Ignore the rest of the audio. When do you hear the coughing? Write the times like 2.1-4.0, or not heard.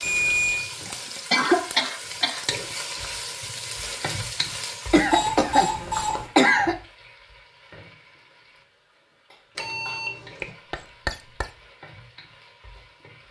0.8-2.5, 4.9-6.8, 10.4-11.4.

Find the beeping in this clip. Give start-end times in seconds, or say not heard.
0.0-0.7, 5.1-6.2, 9.6-10.5.